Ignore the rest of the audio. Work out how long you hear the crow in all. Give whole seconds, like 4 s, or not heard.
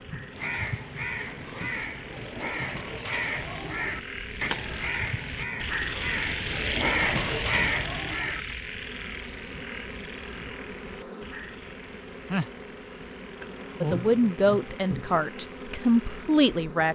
8 s.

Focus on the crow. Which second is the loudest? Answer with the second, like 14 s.
7 s.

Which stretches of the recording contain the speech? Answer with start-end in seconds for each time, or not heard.
13.8-16.9.